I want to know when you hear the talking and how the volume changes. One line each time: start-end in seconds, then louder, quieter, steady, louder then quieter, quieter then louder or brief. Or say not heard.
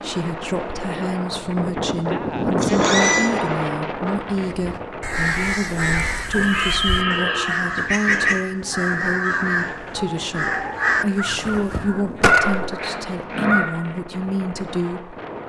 0.0-15.2 steady.